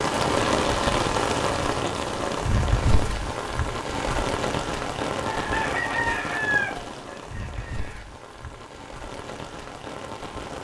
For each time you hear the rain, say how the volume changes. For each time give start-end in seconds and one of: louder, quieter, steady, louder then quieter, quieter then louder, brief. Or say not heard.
0.0-10.5 quieter.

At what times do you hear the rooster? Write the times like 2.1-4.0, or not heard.
5.3-8.1.